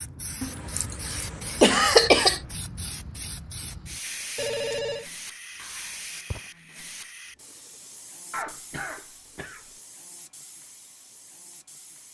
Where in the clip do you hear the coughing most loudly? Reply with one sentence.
The loudest moment of the coughing is at 2 seconds.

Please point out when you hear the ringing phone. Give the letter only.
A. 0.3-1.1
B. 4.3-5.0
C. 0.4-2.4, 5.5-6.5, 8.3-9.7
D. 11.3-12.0
B.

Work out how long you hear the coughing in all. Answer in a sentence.
You can hear the coughing for 4 seconds altogether.